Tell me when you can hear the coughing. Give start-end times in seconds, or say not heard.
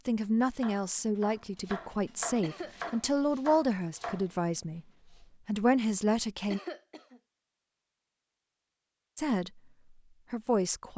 2.4-3.1, 6.5-7.2.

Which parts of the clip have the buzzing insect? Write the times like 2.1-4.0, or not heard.
not heard.